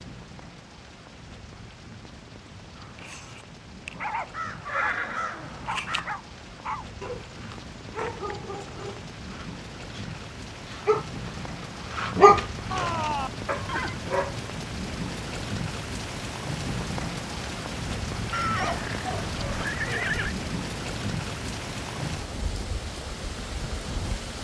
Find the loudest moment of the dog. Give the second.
12 s.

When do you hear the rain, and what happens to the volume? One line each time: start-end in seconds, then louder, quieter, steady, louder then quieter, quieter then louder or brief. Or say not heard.
0.0-24.3 louder.